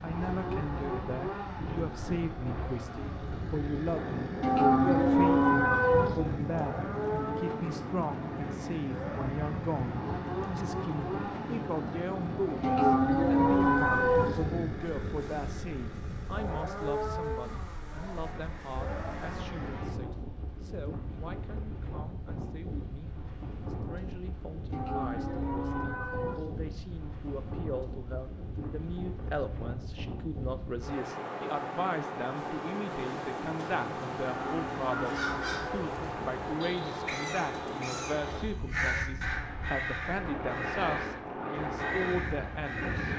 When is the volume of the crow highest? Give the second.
39 s.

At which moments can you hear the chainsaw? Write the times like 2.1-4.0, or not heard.
0.0-19.9.